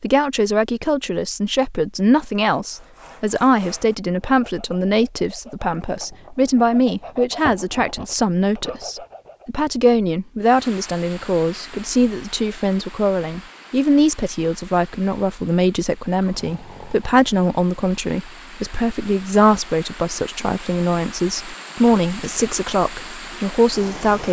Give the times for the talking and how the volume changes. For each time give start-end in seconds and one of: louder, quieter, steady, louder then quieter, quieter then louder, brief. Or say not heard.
0.0-24.2 steady.